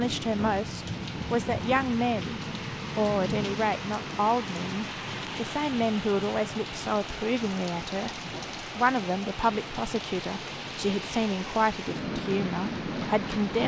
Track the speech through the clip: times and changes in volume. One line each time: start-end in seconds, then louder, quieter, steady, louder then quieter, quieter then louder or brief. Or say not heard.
0.0-13.6 steady.